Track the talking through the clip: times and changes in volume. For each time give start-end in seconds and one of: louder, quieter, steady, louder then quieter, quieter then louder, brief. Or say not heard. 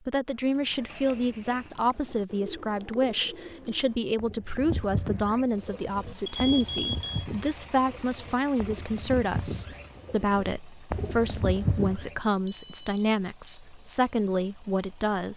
0.1-15.3 steady.